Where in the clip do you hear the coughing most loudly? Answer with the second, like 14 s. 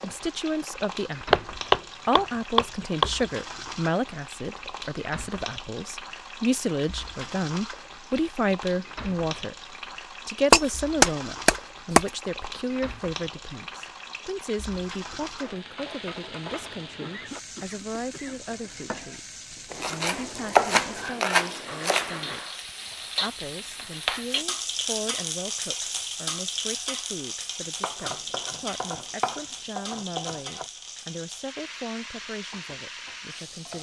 17 s.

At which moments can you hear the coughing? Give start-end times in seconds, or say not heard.
16.9-18.4.